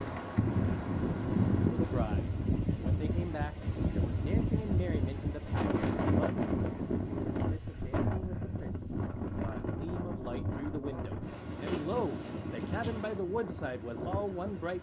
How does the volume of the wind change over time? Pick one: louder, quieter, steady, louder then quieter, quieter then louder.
quieter.